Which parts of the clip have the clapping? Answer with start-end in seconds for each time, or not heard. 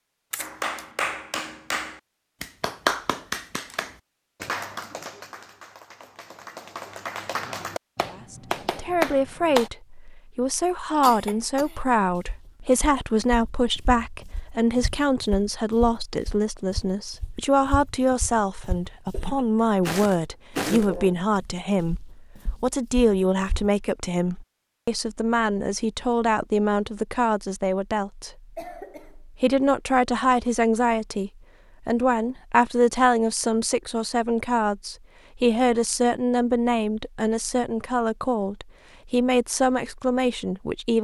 0.3-9.7.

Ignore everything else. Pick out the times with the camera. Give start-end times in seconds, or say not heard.
0.3-0.9.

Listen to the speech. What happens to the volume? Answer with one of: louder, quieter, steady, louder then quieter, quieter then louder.
steady.